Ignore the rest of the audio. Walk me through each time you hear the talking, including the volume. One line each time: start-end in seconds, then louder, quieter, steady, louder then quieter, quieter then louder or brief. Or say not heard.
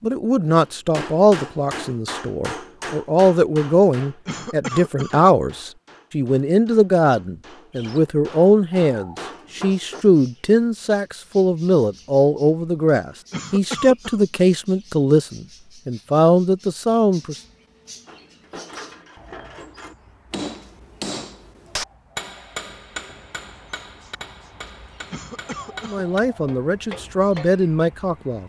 0.0-17.4 steady
25.8-28.4 brief.